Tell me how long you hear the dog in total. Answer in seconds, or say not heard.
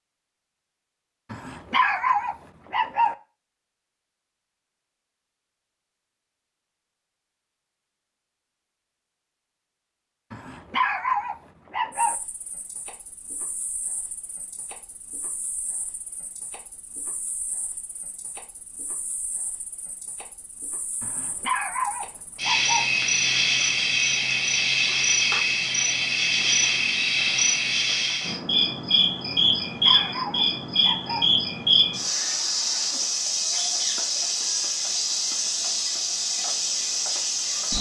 7 s.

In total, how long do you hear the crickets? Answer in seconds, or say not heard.
26 s.